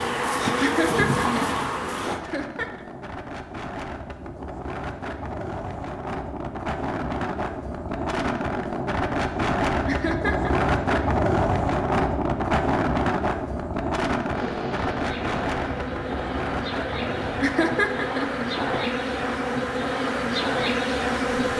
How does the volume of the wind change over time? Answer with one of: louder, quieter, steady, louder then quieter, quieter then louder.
louder then quieter.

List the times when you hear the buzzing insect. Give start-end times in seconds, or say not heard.
0.0-2.2, 14.3-21.5.